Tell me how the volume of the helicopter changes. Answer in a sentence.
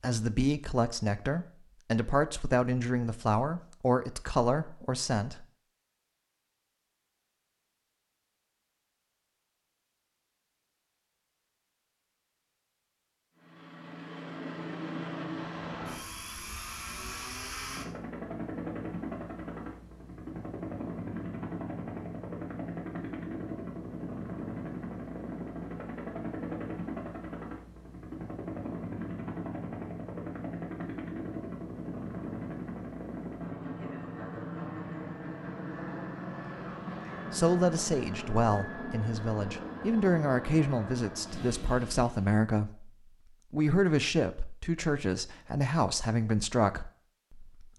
The loudness of the helicopter stays about the same.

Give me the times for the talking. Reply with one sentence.
You can hear the talking from 0.0 to 5.5 s, from 37.3 to 42.9 s and from 43.5 to 47.7 s.